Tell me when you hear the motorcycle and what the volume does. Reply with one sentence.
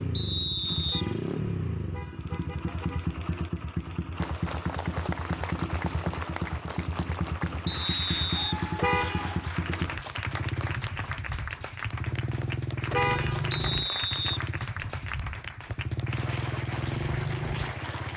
The motorcycle can be heard from 0.0 to 18.1 s, at a steady volume.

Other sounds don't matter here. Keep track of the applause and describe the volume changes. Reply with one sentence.
The loudness of the applause stays about the same.